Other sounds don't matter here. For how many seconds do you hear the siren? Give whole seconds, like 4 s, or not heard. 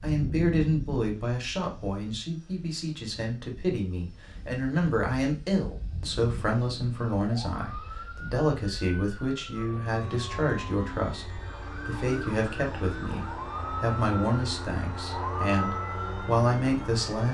10 s.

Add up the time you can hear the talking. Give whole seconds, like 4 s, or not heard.
17 s.